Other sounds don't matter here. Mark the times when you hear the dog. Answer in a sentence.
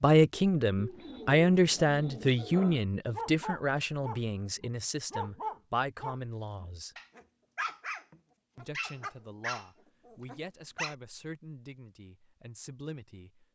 The dog can be heard from 2.4 to 10.9 s.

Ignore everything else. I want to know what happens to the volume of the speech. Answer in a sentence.
The loudness of the speech goes down.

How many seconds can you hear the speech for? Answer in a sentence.
The speech can be heard for 12 seconds in total.